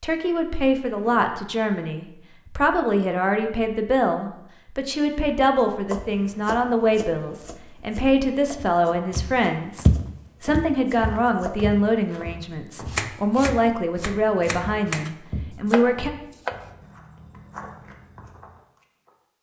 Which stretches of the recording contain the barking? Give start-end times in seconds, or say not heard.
not heard.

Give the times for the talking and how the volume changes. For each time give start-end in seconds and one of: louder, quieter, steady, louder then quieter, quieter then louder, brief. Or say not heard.
0.0-16.1 steady.